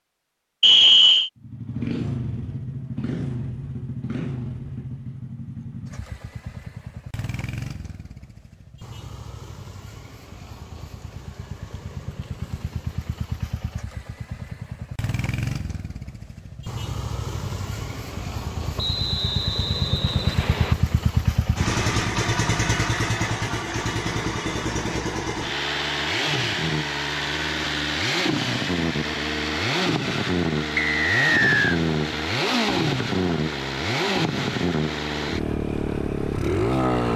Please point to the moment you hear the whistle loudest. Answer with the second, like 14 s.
1 s.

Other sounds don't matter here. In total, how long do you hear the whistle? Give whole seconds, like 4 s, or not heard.
4 s.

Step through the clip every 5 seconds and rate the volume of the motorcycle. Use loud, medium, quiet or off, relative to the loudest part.
medium, quiet, quiet, medium, loud, loud, loud, loud.